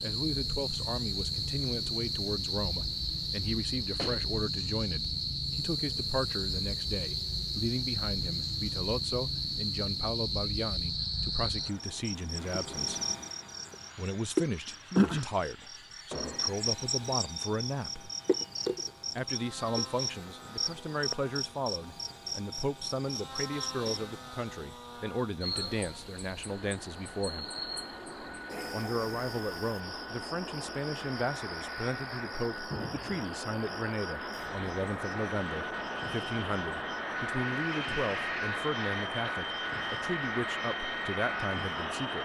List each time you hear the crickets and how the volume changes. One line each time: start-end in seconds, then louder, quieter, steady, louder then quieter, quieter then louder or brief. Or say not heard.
0.0-42.2 quieter.